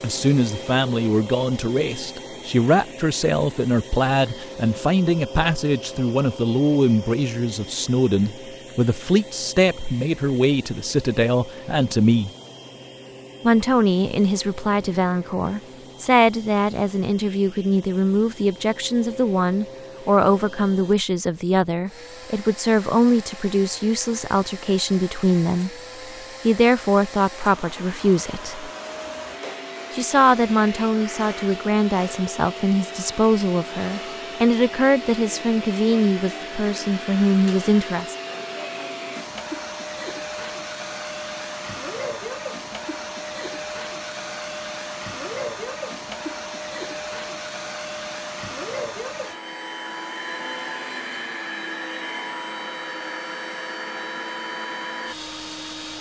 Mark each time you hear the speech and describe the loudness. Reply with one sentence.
The speech can be heard from 0.0 to 12.3 s, at a steady volume; from 13.4 to 25.7 s, at a steady volume; briefly from 26.4 to 28.7 s; and from 29.9 to 38.1 s, at a steady volume.